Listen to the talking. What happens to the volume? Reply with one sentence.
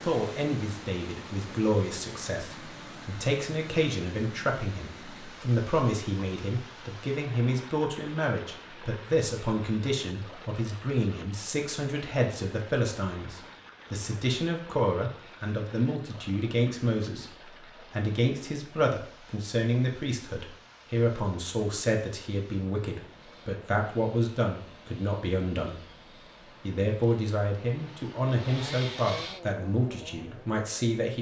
The loudness of the talking stays about the same.